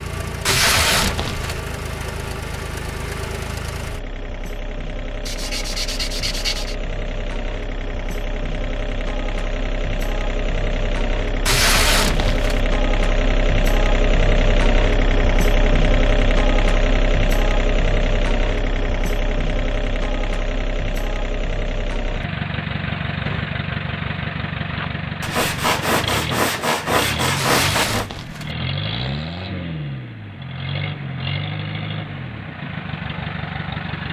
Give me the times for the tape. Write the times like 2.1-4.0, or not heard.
0.5-1.6, 11.4-12.6, 27.4-28.6.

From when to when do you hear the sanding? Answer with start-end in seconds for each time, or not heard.
5.2-6.8, 25.2-28.1.